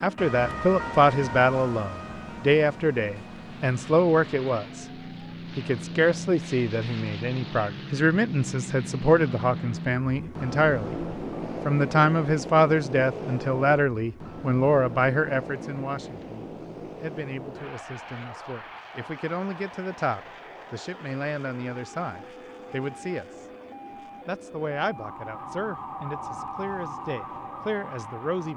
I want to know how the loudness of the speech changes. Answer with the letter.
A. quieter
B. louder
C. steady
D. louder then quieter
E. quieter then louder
A.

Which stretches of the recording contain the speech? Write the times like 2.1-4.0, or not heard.
0.0-4.8, 5.5-11.0, 11.7-23.4, 24.2-28.5.